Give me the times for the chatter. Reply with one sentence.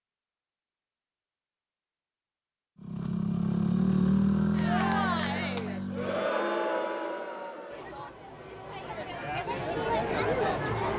You can hear the chatter from 4.5 to 10.9 s.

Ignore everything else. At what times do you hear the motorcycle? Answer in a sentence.
You can hear the motorcycle from 2.8 to 6.3 s.